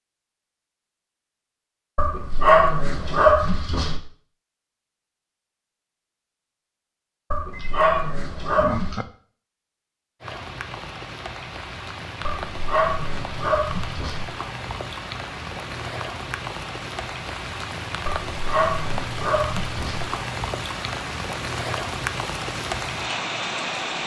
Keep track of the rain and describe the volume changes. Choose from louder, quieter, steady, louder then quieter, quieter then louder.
louder.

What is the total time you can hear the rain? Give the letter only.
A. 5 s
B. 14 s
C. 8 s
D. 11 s
B.